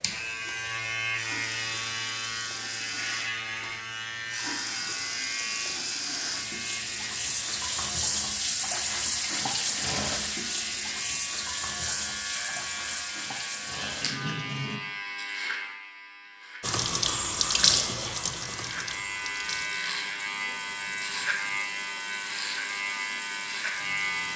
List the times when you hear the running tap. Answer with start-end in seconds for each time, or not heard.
0.0-14.8, 16.6-24.3.